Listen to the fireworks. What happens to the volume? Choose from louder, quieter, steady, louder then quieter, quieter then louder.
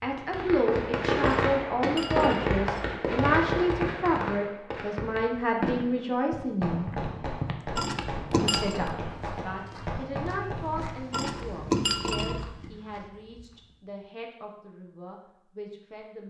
quieter.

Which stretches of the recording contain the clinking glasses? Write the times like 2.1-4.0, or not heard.
1.2-3.0, 7.8-8.8, 11.1-12.5.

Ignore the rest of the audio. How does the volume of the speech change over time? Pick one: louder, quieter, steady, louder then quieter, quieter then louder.
quieter.